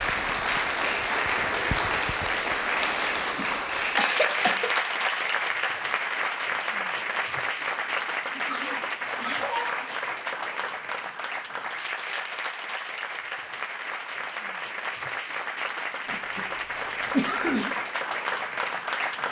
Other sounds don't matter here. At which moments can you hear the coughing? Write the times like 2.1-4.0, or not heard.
3.4-4.7, 8.3-9.9, 16.1-17.8.